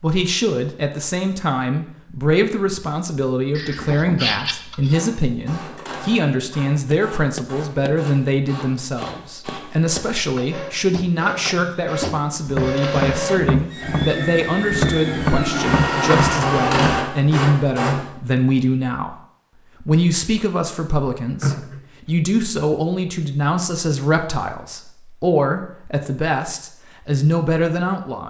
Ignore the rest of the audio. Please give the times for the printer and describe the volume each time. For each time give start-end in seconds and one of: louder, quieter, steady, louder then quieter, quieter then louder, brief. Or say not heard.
4.9-18.1 louder.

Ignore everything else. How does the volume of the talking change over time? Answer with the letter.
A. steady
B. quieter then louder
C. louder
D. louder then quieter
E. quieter
A.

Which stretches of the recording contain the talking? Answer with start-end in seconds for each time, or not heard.
0.0-19.1, 19.8-28.2.